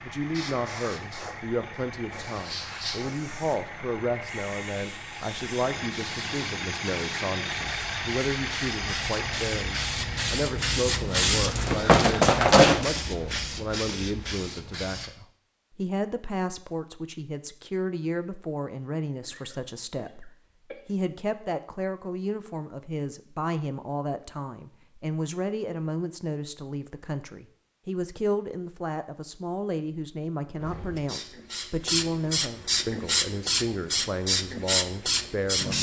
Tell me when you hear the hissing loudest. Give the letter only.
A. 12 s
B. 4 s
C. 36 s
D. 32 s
A.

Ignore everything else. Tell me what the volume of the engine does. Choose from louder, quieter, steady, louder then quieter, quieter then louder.
louder.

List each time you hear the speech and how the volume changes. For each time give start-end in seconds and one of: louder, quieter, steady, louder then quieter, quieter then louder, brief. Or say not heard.
0.0-35.7 steady.